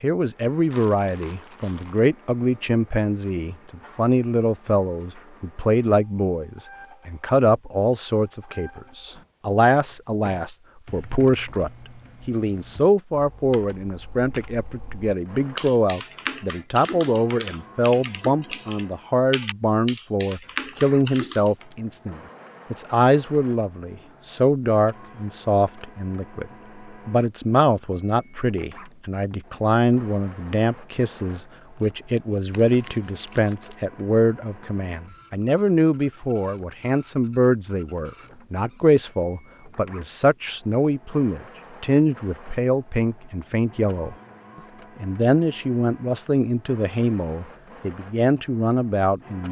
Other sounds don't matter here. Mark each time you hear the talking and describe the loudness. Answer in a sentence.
The talking can be heard from 0.0 to 26.4 s, at a steady volume; from 27.1 to 44.1 s, at a steady volume; and from 45.0 to 49.4 s, at a steady volume.